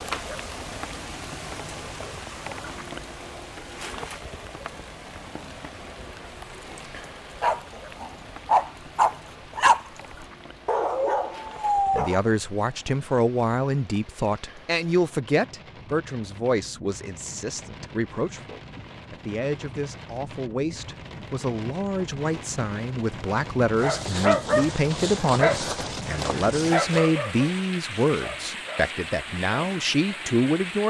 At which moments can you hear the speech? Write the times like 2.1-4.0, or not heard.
11.9-30.8.